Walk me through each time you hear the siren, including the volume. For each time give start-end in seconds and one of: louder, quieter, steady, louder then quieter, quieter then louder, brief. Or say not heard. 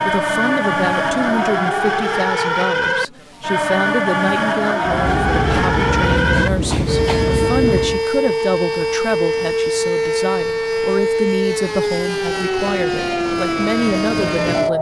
0.0-14.7 steady.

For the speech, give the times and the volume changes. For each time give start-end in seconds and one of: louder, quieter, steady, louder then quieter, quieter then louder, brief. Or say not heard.
0.0-14.7 steady.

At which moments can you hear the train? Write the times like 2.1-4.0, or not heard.
4.8-8.1.